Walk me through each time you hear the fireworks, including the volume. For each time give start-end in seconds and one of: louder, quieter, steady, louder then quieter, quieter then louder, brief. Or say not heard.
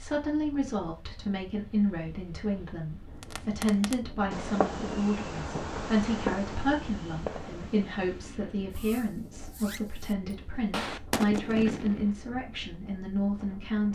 3.2-12.2 quieter then louder.